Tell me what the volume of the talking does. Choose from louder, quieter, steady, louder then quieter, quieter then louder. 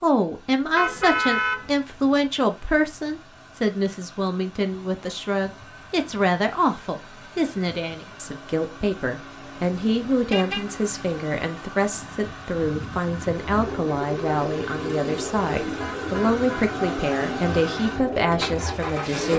steady.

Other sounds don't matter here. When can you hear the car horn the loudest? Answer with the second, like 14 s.
1 s.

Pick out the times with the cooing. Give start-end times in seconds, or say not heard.
13.3-18.9.